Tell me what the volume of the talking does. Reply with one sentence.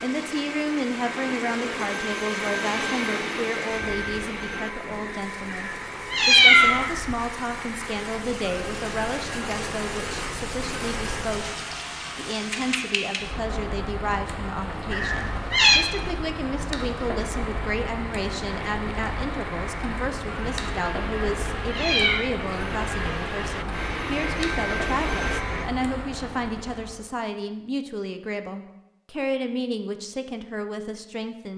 The volume of the talking stays about the same.